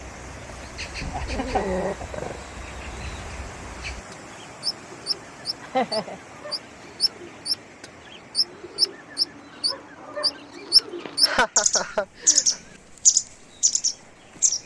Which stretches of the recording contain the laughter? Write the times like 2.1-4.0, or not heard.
1.1-2.4, 5.6-6.2, 11.1-12.6.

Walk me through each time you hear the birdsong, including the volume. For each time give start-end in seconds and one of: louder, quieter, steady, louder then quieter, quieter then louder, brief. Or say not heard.
0.0-14.6 louder.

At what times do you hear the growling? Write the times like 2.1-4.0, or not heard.
1.0-2.5.